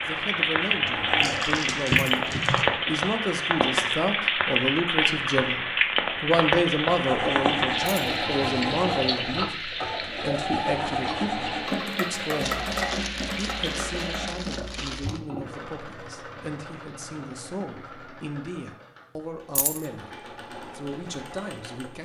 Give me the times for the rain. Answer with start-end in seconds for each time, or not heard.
0.0-14.3.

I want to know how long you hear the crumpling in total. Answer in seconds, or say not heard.
4 s.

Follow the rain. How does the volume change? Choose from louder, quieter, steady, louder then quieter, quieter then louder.
quieter.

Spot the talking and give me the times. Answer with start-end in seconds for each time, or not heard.
0.0-5.6, 6.2-12.7, 13.3-22.0.